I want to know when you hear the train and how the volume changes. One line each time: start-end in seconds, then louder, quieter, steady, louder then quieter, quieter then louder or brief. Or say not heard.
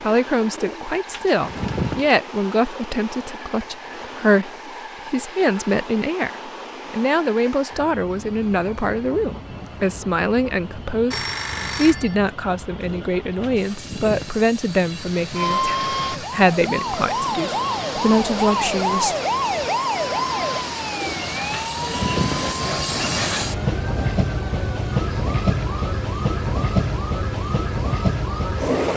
0.0-28.9 louder.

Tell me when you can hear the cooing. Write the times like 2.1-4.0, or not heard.
0.5-2.1, 12.8-14.4, 20.9-22.6.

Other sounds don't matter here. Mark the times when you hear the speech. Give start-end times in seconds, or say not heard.
0.0-19.2.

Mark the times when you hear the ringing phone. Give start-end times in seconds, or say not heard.
11.1-12.2.